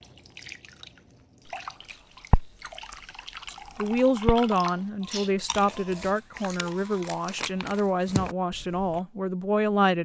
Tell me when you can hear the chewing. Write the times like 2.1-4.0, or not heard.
2.3-9.0.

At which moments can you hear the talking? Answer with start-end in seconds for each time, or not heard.
3.8-10.0.